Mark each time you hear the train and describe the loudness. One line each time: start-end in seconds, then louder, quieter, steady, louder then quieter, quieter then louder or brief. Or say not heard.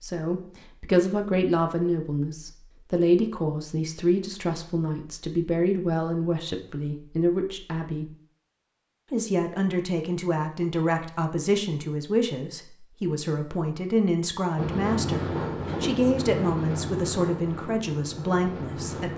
14.6-19.1 quieter.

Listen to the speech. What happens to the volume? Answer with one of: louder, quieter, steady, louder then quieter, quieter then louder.
steady.